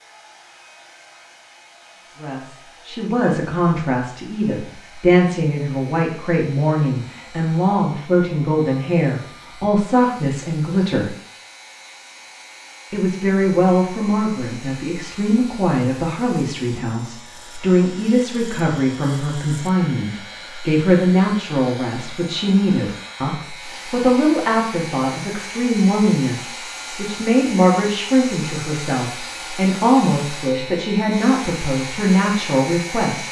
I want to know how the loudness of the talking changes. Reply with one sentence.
The loudness of the talking stays about the same.